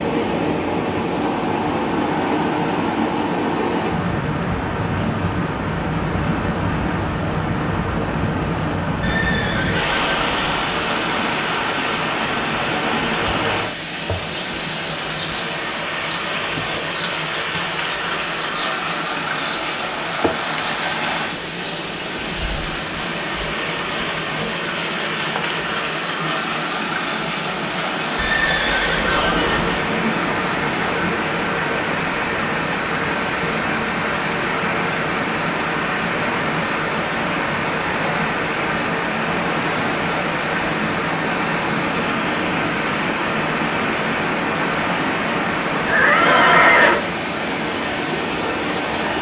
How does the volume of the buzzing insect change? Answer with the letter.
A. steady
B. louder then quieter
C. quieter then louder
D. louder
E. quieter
A.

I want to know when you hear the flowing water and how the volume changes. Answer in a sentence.
The flowing water can be heard from 0.0 to 49.1 s, at a steady volume.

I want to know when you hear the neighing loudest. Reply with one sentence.
The loudest moment of the neighing is at 47 seconds.